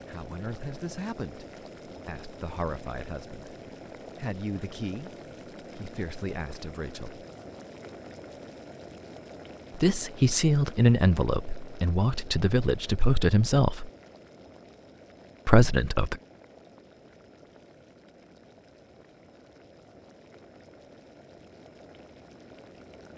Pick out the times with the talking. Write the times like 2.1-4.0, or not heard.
0.1-3.5, 4.2-7.2, 9.7-13.9, 15.4-16.2.